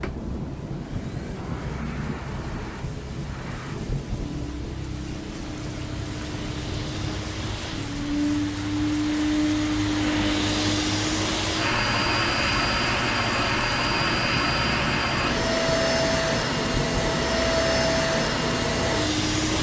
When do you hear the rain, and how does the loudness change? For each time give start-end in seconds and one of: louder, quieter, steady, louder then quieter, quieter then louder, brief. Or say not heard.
0.0-19.5 steady.